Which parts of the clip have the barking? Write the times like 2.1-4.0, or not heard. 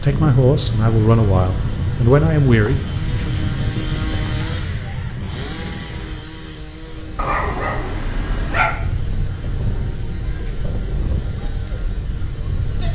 7.2-8.8.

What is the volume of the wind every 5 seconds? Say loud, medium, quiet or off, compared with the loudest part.
loud, medium, medium.